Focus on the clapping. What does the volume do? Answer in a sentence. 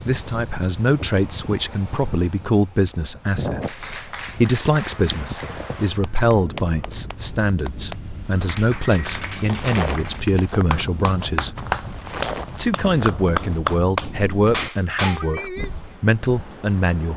The loudness of the clapping goes up.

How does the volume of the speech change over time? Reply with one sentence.
The volume of the speech stays about the same.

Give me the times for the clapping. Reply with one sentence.
You can hear the clapping from 3.6 to 15.7 s.